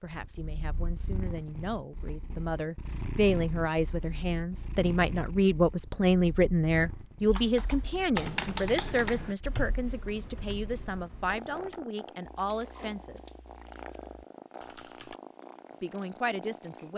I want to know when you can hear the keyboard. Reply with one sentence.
The keyboard can be heard from 7.2 to 15.2 s.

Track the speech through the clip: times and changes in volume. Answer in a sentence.
The speech can be heard from 0.0 to 13.3 s, getting louder then quieter; and briefly from 15.8 to 16.9 s.